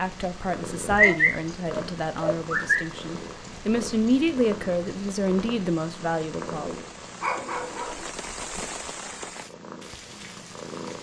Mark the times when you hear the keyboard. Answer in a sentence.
The keyboard can't be heard in this clip.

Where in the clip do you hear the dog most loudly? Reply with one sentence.
The volume of the dog peaks at 1 second.